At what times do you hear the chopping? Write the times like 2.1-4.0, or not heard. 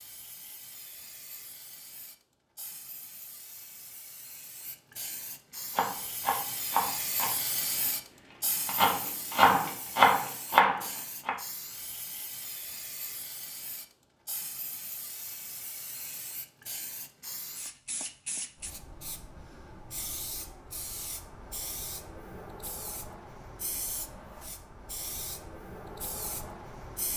5.8-7.9, 8.7-11.3.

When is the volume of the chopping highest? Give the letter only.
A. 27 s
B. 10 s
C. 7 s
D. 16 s
B.